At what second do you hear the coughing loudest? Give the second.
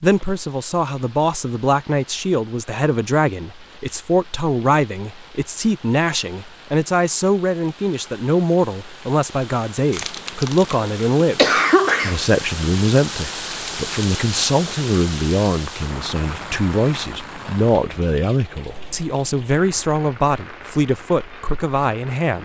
12 s.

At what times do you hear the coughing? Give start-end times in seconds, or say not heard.
9.9-12.2.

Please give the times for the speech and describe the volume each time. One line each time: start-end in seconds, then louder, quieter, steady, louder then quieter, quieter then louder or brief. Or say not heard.
0.0-22.4 steady.